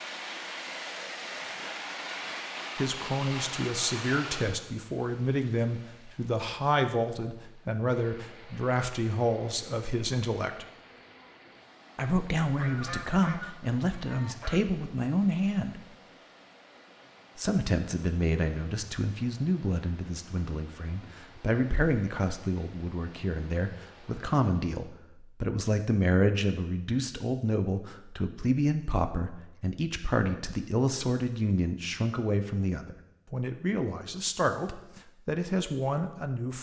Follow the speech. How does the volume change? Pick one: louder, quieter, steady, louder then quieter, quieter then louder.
steady.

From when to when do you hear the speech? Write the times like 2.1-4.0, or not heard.
2.8-10.7, 11.9-15.8, 17.4-36.5.